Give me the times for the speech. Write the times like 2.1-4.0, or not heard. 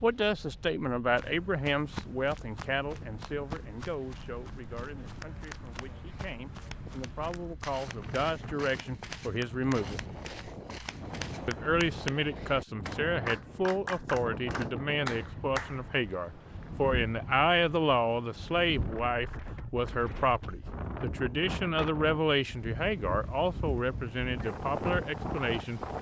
0.0-10.0, 11.4-25.8.